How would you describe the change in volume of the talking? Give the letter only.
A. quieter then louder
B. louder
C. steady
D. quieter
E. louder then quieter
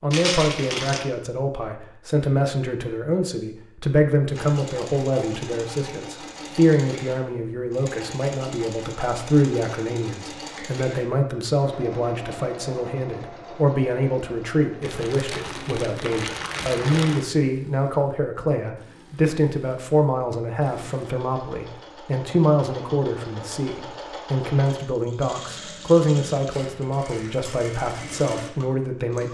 C.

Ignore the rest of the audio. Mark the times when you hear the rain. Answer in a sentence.
You can't hear the rain here.